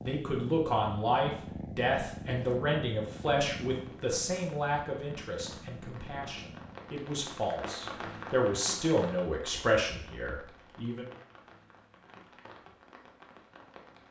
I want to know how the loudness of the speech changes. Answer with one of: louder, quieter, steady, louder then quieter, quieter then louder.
quieter then louder.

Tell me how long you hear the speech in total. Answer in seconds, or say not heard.
11 s.